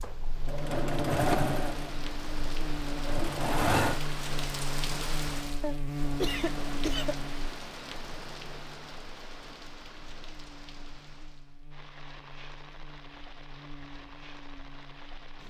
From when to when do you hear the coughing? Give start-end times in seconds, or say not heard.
5.6-7.2.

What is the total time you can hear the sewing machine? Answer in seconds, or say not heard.
4 s.